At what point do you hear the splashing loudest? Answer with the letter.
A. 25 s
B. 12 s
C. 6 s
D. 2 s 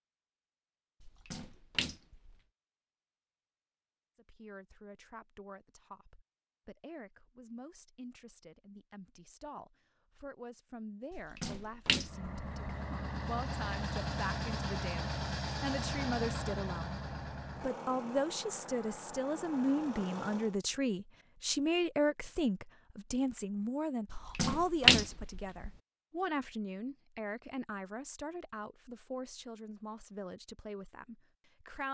A.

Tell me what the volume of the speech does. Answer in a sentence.
The loudness of the speech goes up, then down.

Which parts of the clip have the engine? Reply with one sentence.
You can hear the engine from 11.9 to 20.6 s.